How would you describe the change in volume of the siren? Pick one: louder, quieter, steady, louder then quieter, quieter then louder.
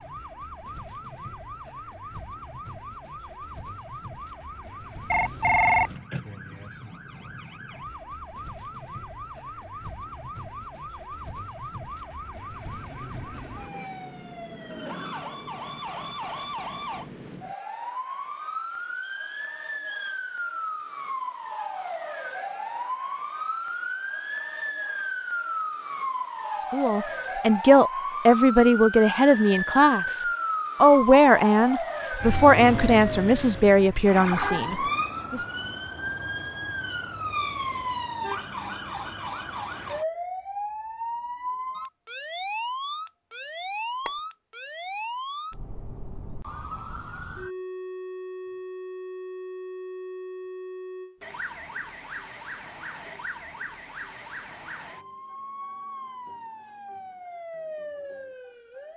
louder then quieter.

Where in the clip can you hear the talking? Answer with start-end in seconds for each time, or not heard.
26.7-35.4.